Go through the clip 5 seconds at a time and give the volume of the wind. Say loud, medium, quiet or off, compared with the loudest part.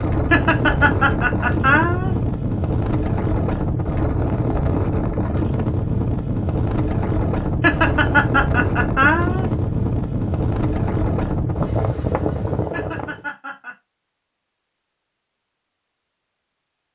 loud, loud, loud, off.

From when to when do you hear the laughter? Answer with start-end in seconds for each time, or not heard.
0.3-2.1, 7.6-9.4, 12.7-13.8.